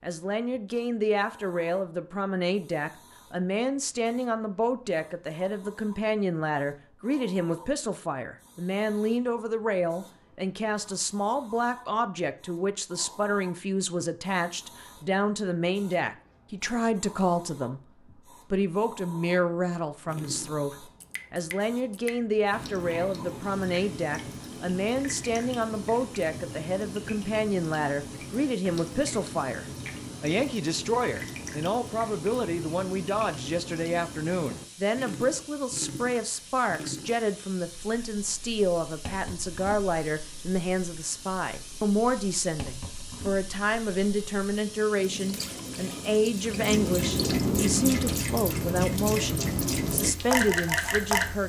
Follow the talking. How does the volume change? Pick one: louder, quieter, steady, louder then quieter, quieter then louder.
steady.